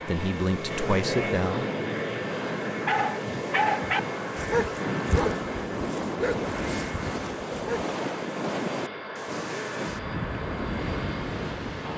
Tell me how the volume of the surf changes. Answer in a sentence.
The loudness of the surf goes up.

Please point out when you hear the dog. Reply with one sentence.
The dog can be heard from 2.9 to 8.0 s.